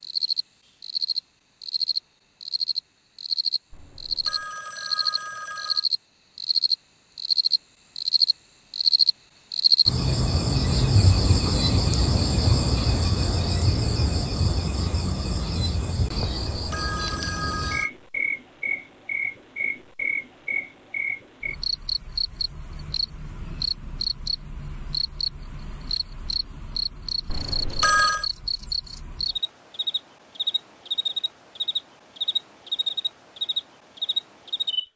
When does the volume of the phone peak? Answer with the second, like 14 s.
28 s.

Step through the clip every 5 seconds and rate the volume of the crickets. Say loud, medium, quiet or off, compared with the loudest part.
medium, loud, loud, medium, medium, medium, medium.